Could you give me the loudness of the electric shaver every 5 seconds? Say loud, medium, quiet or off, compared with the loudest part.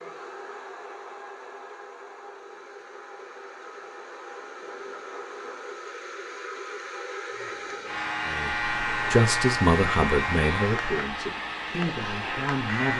off, loud, loud.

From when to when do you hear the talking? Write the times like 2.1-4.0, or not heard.
8.2-12.9.